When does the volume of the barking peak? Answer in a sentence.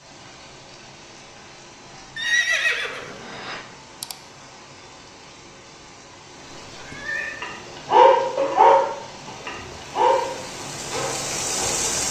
The volume of the barking peaks at 8 seconds.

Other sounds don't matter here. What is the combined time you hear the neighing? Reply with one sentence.
The neighing can be heard for 3 seconds in total.